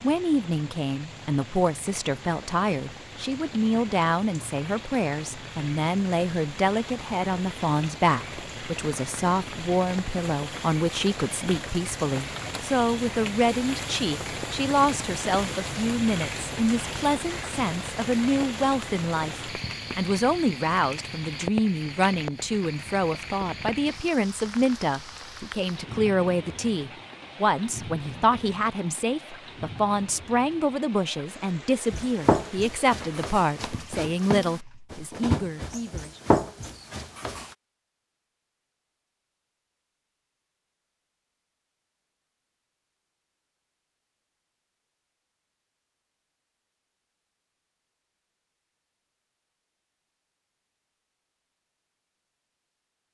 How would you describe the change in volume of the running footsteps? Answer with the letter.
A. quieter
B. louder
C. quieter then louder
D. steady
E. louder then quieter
C.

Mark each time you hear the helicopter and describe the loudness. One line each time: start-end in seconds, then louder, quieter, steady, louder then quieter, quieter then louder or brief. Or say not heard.
not heard.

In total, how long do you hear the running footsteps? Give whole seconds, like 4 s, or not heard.
6 s.